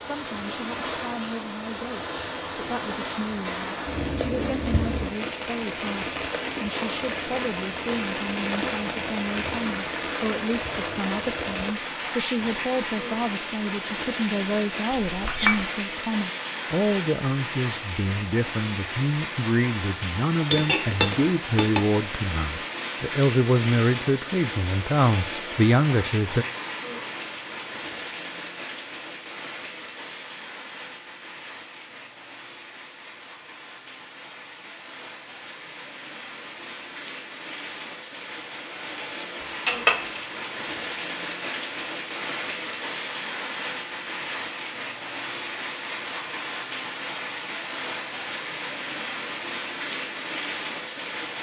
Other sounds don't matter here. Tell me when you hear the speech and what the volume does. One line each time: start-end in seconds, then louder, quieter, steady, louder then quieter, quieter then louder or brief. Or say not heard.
0.0-26.4 louder.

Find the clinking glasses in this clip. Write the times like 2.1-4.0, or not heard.
15.1-15.7, 20.5-21.9, 39.6-40.2.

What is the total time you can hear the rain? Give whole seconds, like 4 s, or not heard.
51 s.